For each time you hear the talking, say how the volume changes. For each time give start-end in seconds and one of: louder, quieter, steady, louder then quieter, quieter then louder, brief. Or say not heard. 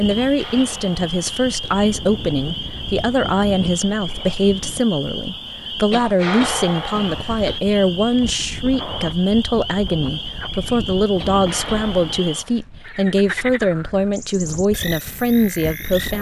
0.0-16.1 steady.